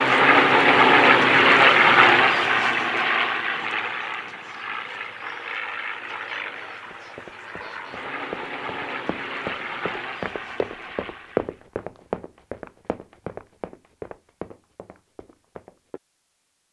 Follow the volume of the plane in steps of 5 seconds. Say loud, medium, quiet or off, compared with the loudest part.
loud, quiet, quiet, off.